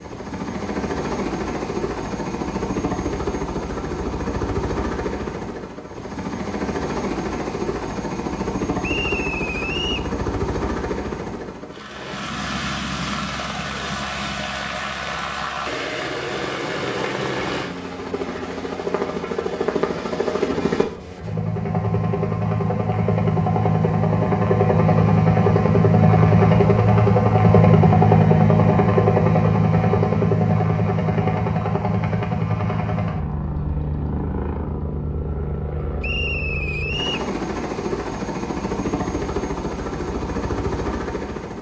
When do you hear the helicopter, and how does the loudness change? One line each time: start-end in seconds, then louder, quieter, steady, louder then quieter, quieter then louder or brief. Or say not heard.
0.0-41.5 louder then quieter.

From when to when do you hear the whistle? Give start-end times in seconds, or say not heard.
8.8-10.1, 36.0-37.3.